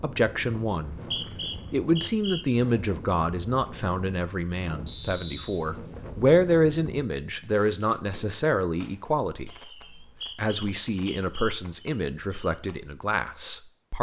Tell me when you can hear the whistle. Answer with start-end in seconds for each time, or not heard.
0.9-2.5, 4.8-5.6, 9.8-11.6.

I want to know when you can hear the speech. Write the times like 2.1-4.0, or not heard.
0.0-0.9, 1.7-9.5, 10.3-13.9.